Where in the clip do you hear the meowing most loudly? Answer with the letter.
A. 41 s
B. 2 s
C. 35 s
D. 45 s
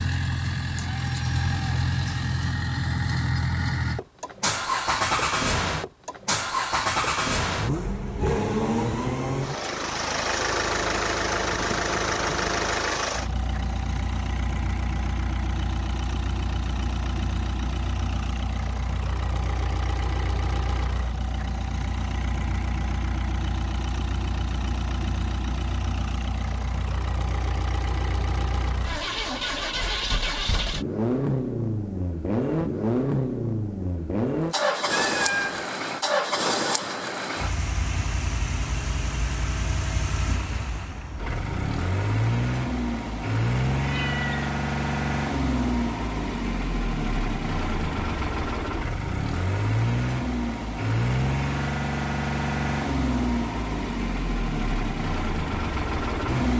C.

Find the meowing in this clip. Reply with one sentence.
The meowing can be heard from 0.8 to 2.4 s, from 34.9 to 35.7 s and from 43.8 to 44.5 s.